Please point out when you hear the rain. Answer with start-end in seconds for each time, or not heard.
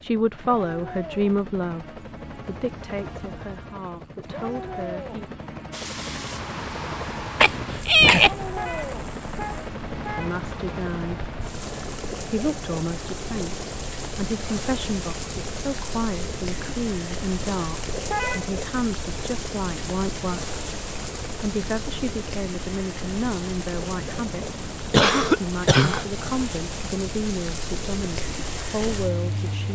5.7-29.6.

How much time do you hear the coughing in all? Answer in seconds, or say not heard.
2 s.